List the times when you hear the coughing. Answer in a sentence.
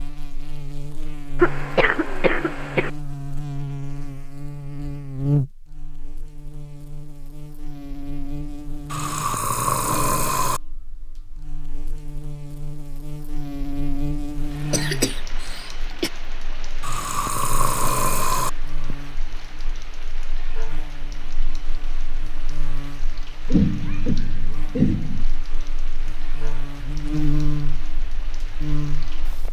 You can hear the coughing from 1.4 to 2.9 s, from 14.7 to 16.1 s and from 23.5 to 25.2 s.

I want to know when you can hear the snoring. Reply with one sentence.
The snoring can be heard from 8.9 to 10.6 s and from 16.8 to 18.5 s.